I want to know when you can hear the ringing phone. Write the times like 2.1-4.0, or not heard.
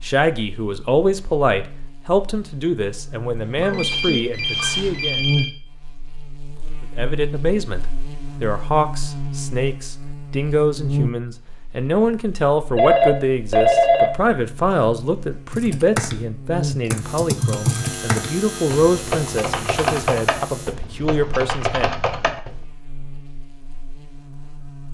3.5-5.5, 12.8-14.1, 17.4-19.1.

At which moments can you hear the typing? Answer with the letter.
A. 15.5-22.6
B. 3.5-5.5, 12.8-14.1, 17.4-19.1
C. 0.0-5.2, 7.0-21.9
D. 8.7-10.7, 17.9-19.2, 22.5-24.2
A.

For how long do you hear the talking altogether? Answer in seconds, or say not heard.
20 s.